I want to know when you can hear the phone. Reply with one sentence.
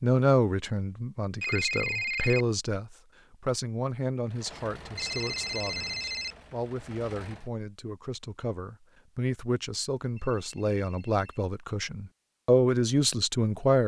The phone can be heard from 1.4 to 2.5 s, from 5.0 to 6.3 s and from 10.2 to 11.4 s.